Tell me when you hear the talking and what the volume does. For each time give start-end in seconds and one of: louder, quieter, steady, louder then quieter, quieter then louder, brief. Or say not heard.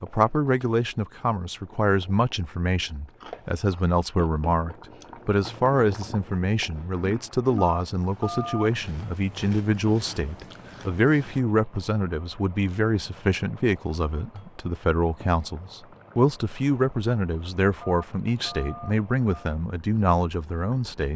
0.0-21.1 steady.